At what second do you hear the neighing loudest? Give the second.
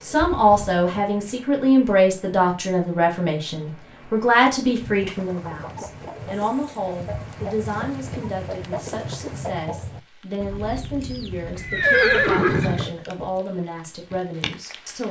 12 s.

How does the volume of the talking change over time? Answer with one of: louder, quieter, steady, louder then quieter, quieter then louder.
quieter.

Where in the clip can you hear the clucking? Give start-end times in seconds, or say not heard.
4.9-13.4.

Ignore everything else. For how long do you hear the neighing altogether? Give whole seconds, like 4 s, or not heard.
2 s.